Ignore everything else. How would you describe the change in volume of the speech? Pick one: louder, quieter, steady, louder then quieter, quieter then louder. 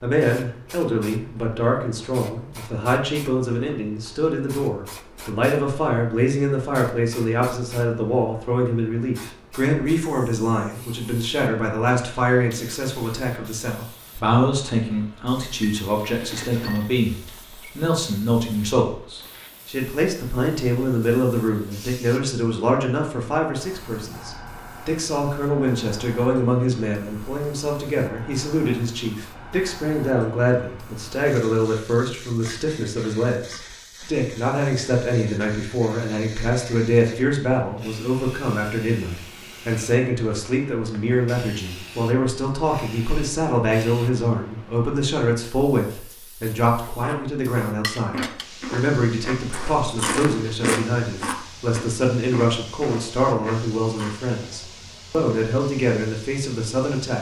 steady.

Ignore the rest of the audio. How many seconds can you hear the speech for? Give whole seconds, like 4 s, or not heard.
57 s.